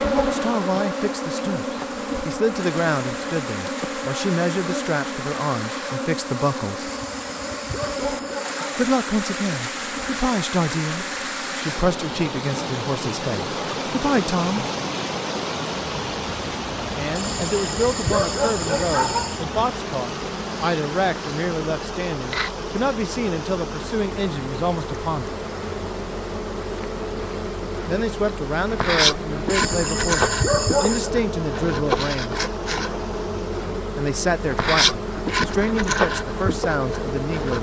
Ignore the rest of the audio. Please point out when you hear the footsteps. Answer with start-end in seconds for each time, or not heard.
not heard.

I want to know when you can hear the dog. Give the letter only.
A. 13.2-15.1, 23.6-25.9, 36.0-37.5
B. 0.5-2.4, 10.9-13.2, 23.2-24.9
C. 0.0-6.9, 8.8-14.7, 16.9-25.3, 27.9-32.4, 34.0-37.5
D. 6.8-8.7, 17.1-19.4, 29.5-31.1
D.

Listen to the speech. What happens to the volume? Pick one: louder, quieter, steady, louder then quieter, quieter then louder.
steady.